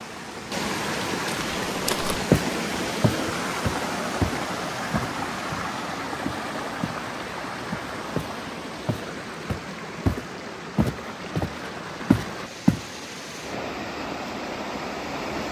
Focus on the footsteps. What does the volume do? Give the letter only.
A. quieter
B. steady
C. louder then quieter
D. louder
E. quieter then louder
E.